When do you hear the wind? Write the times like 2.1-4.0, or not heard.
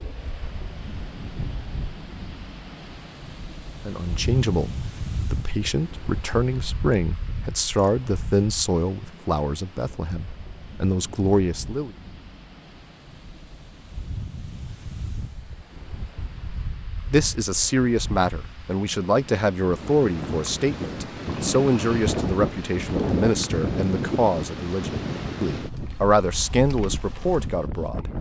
0.0-28.1.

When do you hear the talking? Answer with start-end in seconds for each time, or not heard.
3.9-4.7, 5.3-11.9, 17.1-28.1.